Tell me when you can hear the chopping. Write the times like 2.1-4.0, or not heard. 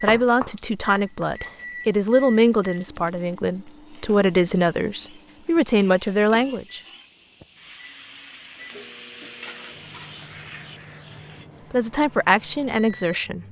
0.0-1.6.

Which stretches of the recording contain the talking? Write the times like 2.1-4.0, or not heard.
0.0-6.8, 11.7-13.4.